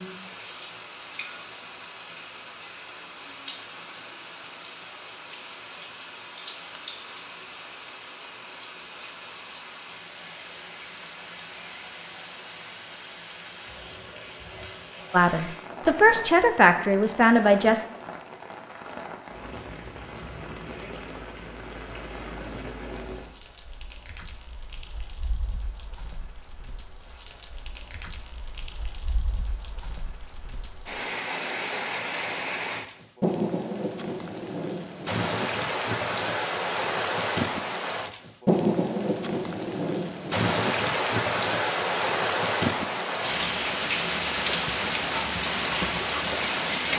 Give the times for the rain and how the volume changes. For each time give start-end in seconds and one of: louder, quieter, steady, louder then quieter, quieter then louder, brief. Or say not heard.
0.0-46.9 louder.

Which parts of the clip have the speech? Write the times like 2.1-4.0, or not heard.
15.1-17.9.